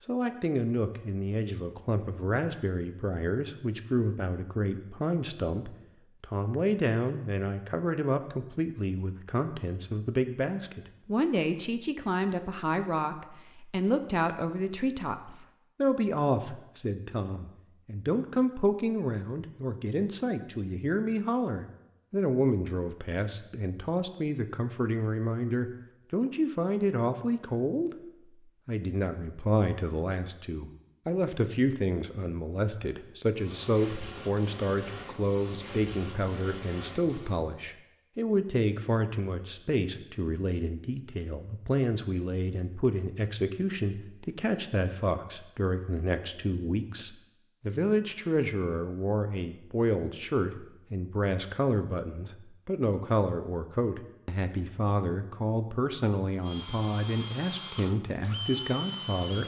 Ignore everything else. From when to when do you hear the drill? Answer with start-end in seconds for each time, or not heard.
56.4-59.4.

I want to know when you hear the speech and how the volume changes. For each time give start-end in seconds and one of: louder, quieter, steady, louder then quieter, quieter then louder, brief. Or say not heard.
0.1-59.4 steady.